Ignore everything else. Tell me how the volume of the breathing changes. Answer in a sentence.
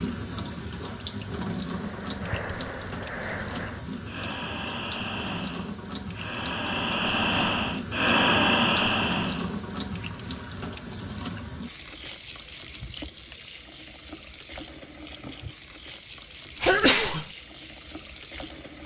The volume of the breathing goes up.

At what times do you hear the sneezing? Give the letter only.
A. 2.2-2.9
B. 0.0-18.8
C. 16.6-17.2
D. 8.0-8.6
C.